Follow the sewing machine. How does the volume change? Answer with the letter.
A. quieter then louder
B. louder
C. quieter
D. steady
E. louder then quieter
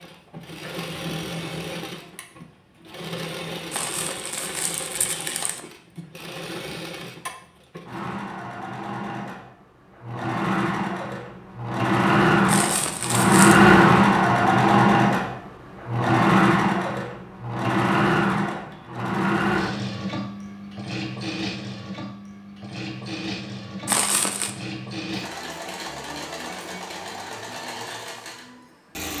E.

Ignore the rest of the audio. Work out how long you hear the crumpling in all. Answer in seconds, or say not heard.
4 s.